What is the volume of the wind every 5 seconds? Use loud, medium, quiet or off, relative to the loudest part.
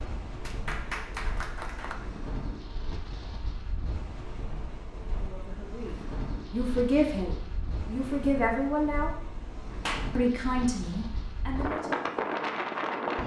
medium, medium, loud.